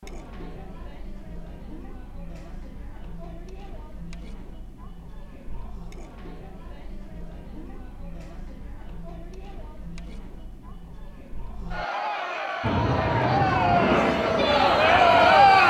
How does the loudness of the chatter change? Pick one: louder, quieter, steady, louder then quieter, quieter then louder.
louder.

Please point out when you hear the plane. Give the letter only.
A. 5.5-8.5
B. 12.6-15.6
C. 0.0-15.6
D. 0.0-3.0
B.